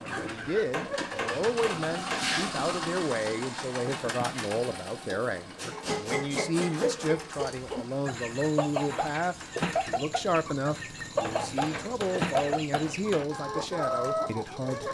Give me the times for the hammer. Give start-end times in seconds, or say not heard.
0.3-2.3, 5.5-7.1, 11.2-13.2.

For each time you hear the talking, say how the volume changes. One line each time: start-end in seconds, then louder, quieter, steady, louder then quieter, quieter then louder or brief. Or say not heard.
0.0-14.8 steady.